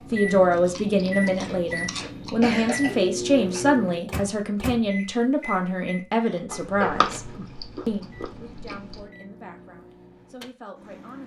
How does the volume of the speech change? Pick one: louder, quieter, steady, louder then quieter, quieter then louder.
quieter.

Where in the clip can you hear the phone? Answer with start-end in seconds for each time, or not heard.
not heard.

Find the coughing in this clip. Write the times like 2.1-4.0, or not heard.
2.4-3.6, 6.2-7.2.